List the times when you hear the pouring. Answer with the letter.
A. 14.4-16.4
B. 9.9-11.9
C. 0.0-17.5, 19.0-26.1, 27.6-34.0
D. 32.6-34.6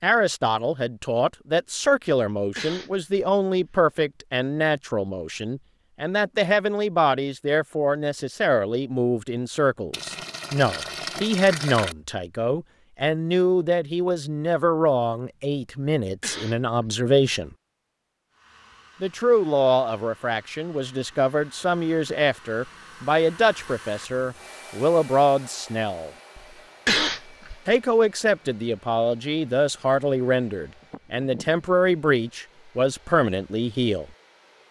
B.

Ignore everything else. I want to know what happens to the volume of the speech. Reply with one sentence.
The volume of the speech stays about the same.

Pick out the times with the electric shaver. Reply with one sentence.
The electric shaver can't be heard in this clip.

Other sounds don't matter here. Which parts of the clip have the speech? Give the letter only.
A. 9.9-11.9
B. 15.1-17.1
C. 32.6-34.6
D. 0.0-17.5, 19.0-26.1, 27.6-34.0
D.